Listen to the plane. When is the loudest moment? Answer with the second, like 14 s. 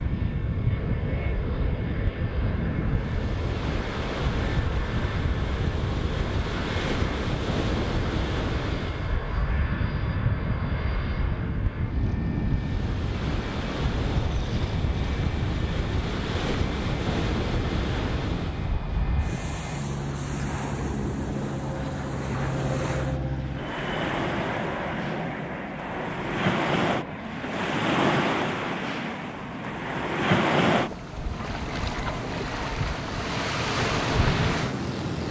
23 s.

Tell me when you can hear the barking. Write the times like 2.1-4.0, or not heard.
not heard.